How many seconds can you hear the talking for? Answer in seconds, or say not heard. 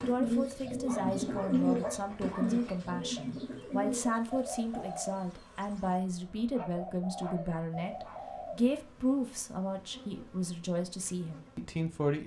12 s.